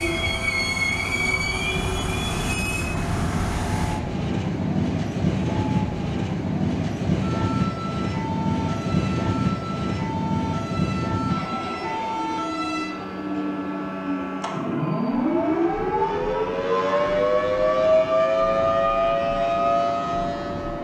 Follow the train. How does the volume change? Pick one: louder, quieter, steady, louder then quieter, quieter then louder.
quieter.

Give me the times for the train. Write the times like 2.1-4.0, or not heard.
0.0-20.8.